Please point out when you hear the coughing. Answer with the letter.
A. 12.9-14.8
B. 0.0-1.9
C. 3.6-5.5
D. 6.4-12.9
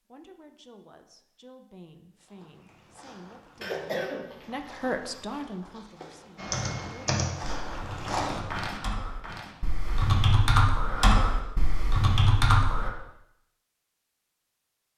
C.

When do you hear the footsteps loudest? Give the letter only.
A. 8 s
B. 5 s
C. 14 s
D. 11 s
A.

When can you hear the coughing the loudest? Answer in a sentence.
The volume of the coughing peaks at 4 seconds.